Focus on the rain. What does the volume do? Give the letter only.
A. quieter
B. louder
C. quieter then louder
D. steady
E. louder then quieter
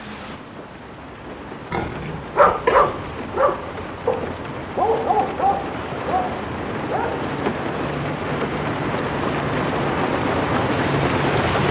B.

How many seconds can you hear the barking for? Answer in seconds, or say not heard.
5 s.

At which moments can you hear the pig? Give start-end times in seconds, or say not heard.
1.7-3.1.